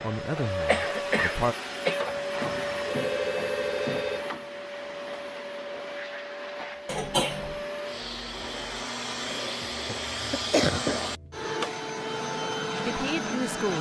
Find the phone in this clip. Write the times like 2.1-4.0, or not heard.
2.3-4.2.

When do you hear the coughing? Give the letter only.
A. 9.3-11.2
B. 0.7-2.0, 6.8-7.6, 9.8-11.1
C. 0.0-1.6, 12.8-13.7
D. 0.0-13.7
B.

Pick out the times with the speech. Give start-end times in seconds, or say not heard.
0.0-1.6, 12.8-13.7.